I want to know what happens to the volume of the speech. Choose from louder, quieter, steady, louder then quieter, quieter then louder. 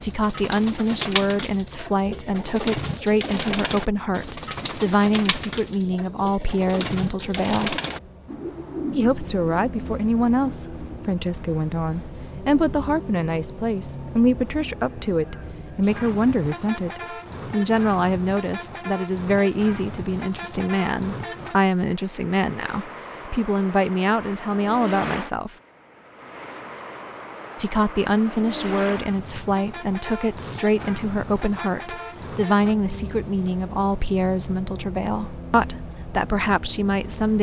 steady.